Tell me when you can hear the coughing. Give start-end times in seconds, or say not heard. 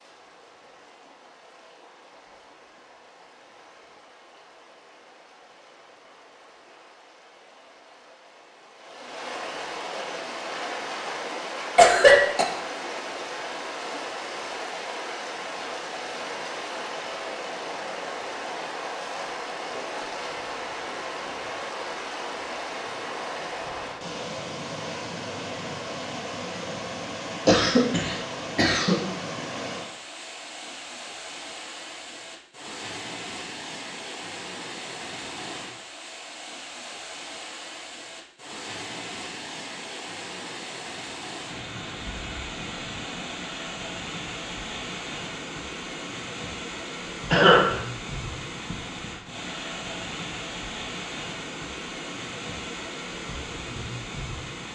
10.5-12.4, 27.4-29.0, 47.3-47.8.